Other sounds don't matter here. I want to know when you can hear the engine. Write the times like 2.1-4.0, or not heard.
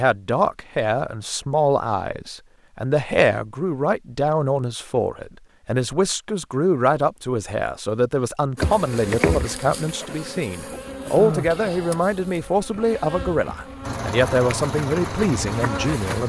13.8-16.2.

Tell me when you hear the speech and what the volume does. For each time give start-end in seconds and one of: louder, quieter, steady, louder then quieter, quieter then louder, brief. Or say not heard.
0.0-16.2 steady.